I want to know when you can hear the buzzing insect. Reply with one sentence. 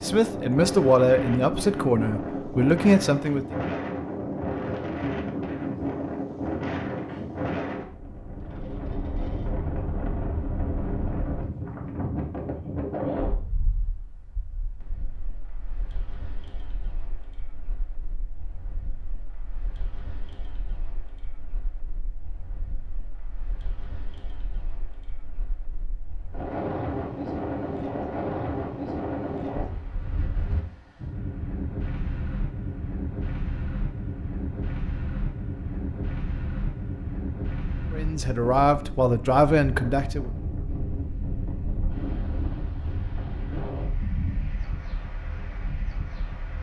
The buzzing insect can't be heard in this clip.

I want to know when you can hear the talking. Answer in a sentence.
The talking can be heard from 0.0 to 3.5 s and from 37.9 to 40.3 s.